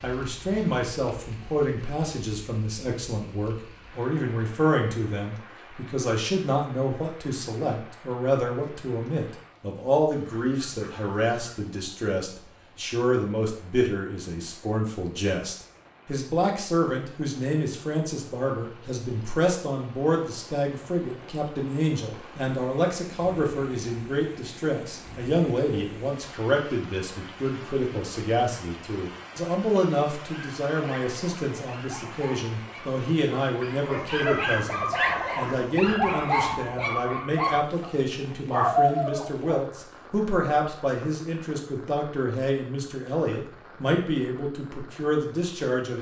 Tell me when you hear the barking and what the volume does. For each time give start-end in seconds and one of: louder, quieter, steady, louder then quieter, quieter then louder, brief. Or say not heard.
30.2-39.6 louder.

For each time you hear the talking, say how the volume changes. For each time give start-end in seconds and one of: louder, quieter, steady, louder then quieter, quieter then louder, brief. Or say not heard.
0.0-45.9 steady.